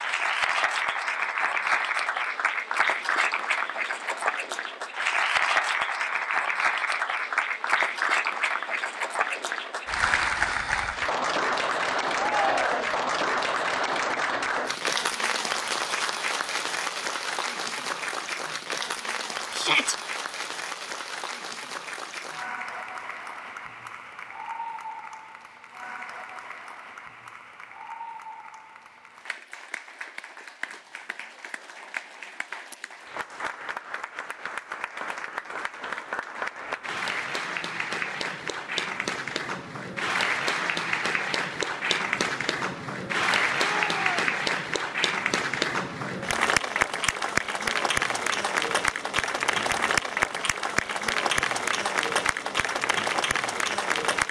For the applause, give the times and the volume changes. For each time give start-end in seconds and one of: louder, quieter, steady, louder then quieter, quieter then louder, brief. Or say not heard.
0.0-54.2 quieter then louder.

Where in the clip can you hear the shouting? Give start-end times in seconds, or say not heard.
12.1-13.0, 19.5-19.9, 43.6-44.2.